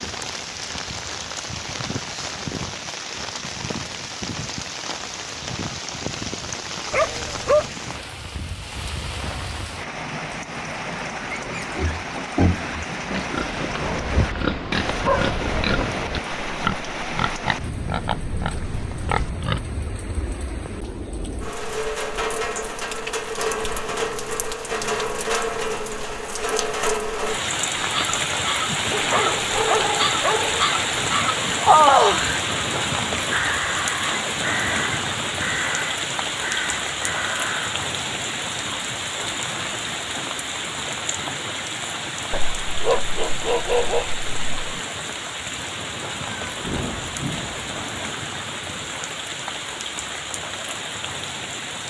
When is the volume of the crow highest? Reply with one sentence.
The volume of the crow peaks at 32 seconds.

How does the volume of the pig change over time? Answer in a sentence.
The loudness of the pig stays about the same.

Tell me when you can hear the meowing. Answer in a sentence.
The meowing can be heard from 46.2 to 47.9 s.